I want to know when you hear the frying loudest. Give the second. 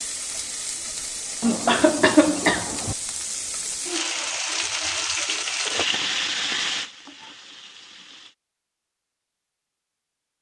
6 s.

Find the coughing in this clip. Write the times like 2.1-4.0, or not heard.
1.4-3.0.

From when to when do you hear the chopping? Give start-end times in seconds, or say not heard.
not heard.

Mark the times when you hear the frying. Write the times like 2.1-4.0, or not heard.
0.0-8.3.